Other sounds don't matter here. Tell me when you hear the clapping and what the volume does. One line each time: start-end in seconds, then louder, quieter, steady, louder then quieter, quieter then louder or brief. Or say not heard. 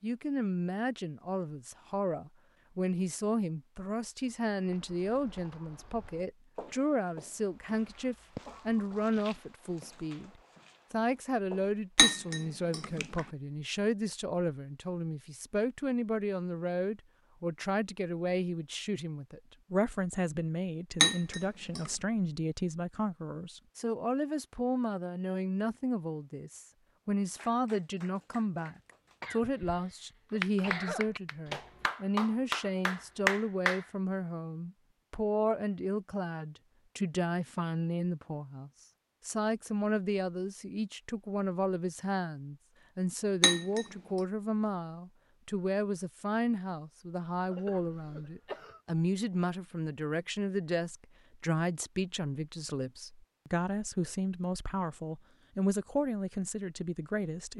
27.4-33.8 louder.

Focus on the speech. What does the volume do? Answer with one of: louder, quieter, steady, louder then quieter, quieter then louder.
steady.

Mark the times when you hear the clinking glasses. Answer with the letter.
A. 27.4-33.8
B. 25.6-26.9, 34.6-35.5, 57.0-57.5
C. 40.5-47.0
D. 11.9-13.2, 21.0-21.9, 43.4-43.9
D.